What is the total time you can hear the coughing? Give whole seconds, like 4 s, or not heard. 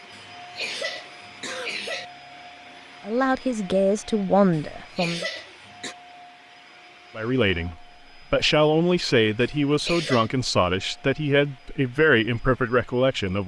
4 s.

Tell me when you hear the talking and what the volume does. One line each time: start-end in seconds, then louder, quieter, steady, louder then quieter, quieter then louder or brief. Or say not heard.
3.0-5.2 brief
7.2-13.4 steady.